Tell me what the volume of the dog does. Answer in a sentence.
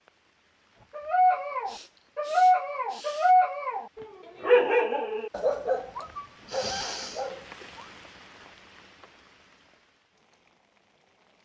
The loudness of the dog goes down.